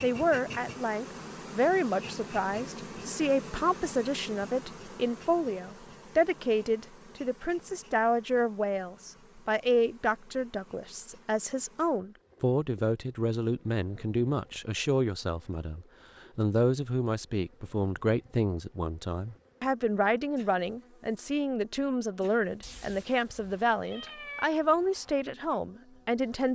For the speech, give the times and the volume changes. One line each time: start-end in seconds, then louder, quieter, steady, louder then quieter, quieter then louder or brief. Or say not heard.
0.0-26.5 steady.